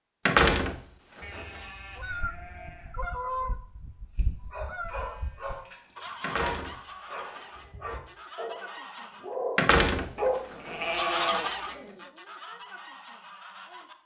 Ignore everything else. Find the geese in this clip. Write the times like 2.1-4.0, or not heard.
1.9-9.3, 10.8-13.9.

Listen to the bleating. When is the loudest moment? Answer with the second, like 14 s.
11 s.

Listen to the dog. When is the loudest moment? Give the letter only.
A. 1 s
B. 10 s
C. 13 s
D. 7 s
B.